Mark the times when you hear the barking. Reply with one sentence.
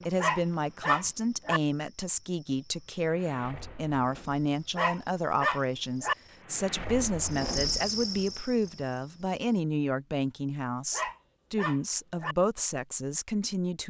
The barking can be heard from 0.1 to 1.6 s, from 4.8 to 6.2 s and from 10.9 to 12.3 s.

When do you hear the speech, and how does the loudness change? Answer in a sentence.
The speech can be heard from 0.1 to 13.8 s, at a steady volume.